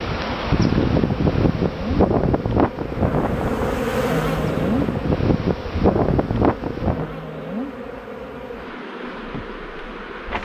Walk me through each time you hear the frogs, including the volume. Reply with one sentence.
The frogs can't be heard in this clip.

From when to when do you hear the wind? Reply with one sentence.
You can hear the wind from 0.0 to 7.1 s.